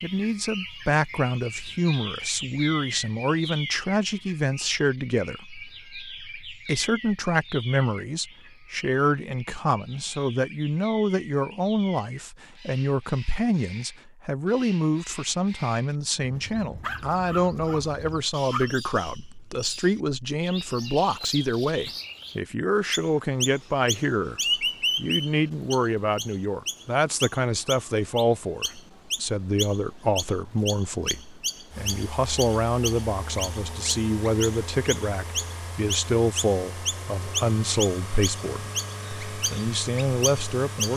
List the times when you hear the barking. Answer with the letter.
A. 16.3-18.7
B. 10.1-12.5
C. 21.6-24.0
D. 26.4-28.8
A.